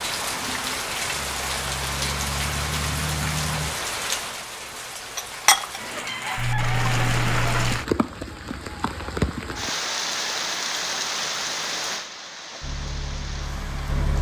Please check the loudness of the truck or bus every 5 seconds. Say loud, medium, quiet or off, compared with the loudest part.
loud, off, loud.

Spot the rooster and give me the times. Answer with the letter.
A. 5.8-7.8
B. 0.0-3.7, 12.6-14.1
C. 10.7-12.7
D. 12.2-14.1
A.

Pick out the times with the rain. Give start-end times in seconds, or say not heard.
0.0-14.1.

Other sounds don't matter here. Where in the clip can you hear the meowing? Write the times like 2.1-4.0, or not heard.
6.3-7.8.